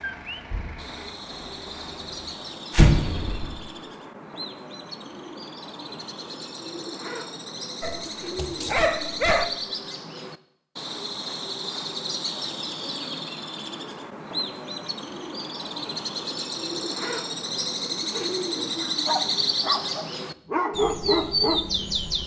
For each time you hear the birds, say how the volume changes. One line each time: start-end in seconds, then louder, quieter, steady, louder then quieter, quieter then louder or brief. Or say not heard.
0.0-22.2 louder.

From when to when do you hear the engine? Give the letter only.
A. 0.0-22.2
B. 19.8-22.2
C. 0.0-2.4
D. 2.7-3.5
C.